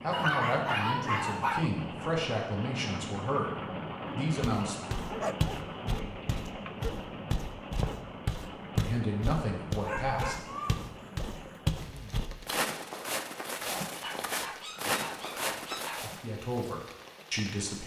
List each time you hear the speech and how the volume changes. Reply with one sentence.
The speech can be heard from 0.0 to 4.8 s, at a steady volume; briefly from 8.8 to 10.4 s; and briefly from 16.0 to 17.8 s.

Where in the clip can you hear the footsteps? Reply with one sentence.
You can hear the footsteps from 4.4 to 16.2 s.